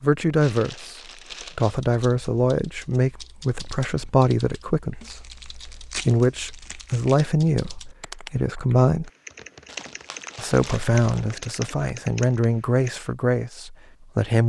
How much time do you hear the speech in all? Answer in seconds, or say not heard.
13 s.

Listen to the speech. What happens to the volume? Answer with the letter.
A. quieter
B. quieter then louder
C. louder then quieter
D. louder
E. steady
E.